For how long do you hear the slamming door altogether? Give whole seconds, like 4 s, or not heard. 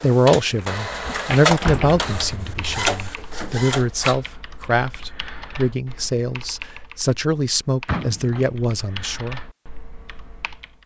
2 s.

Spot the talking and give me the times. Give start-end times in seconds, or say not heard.
0.0-9.4.